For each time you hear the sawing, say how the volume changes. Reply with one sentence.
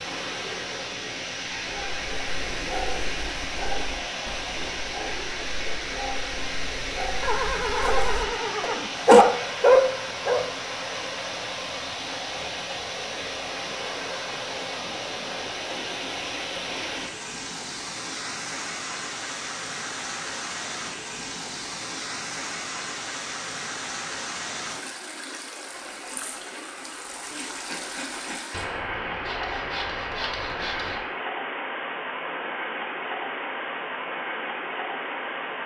The sawing can be heard from 25.7 to 31.0 s, getting louder.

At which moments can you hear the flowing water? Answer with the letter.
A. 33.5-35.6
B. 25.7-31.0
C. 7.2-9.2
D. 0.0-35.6
D.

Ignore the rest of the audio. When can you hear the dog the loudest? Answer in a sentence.
The volume of the dog peaks at 9 seconds.